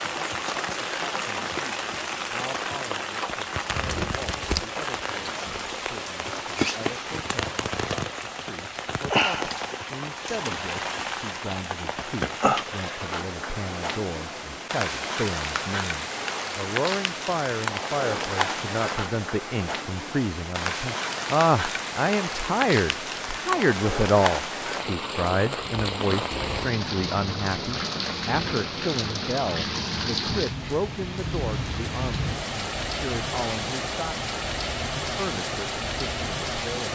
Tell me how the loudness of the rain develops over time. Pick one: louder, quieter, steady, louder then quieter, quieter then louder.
steady.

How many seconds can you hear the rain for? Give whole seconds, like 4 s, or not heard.
37 s.